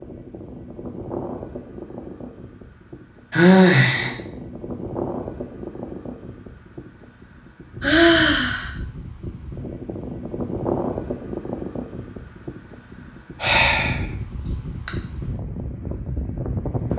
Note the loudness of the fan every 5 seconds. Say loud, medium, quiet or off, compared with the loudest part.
medium, medium, loud, loud.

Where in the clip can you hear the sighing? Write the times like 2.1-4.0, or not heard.
3.3-4.1, 7.8-8.7, 12.9-14.9.